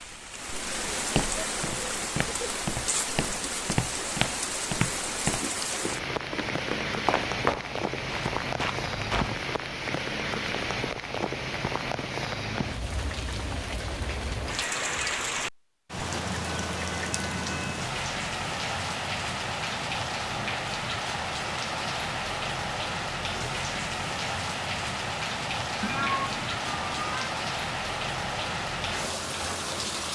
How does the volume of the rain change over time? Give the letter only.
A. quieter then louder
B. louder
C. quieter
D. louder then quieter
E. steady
E.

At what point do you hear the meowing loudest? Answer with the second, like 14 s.
26 s.